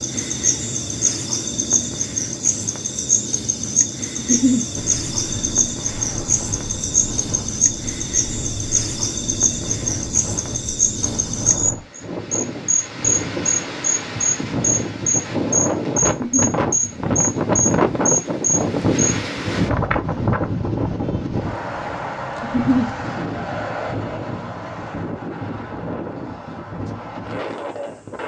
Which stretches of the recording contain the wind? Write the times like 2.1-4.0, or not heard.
4.8-28.2.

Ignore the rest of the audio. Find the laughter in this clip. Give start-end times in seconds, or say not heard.
4.2-4.7, 16.1-16.6, 22.4-22.9.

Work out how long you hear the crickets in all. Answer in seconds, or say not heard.
19 s.